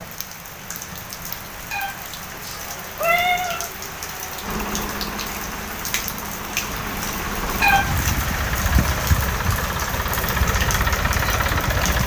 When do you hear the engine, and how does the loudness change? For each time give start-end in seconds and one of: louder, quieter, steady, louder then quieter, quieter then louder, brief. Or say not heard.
4.4-12.0 louder.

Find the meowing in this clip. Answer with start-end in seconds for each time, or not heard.
1.7-3.7, 7.6-8.0.